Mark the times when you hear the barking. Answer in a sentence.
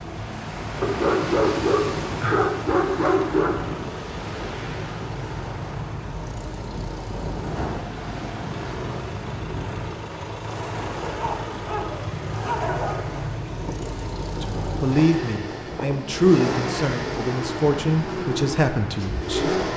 You can hear the barking from 0.8 to 3.8 s and from 11.1 to 13.1 s.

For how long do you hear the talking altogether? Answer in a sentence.
You can hear the talking for 5 seconds altogether.